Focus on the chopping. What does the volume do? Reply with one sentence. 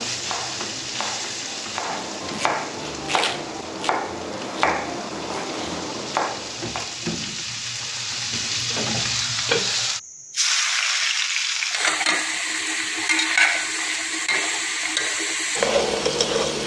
The volume of the chopping goes up.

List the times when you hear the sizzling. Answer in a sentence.
The sizzling can be heard from 0.0 to 16.6 s.